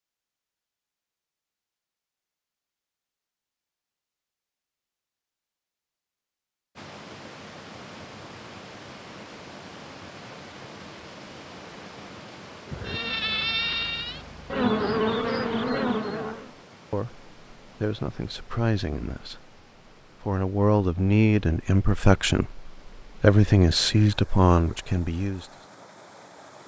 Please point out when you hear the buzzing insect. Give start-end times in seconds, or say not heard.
12.7-16.5.